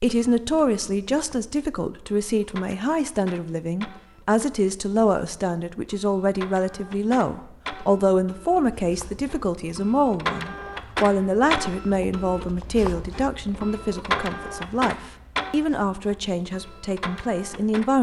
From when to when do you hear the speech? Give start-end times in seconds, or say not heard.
0.0-17.9.